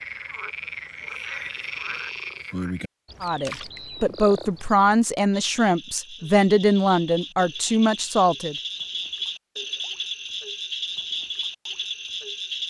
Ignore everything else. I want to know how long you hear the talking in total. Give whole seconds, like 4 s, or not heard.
5 s.